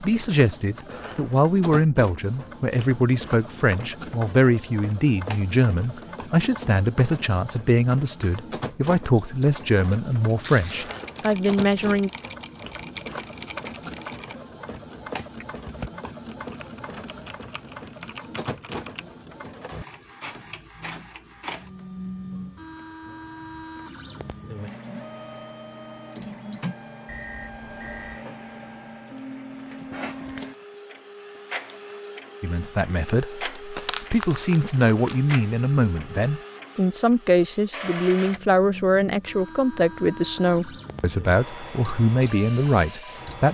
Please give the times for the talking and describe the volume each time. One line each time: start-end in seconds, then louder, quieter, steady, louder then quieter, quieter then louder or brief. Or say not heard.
0.0-12.1 steady
32.4-43.4 steady.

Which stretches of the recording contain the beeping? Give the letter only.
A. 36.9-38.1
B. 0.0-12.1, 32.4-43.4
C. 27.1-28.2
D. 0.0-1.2
C.